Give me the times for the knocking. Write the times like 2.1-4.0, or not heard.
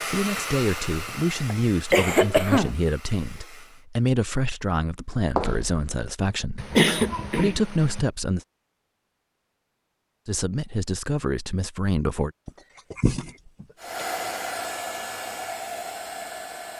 5.3-5.8.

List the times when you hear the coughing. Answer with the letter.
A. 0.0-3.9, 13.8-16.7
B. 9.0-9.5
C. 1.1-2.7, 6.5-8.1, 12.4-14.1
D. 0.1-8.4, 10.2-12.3
C.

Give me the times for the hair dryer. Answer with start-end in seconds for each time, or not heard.
0.0-3.9, 13.8-16.7.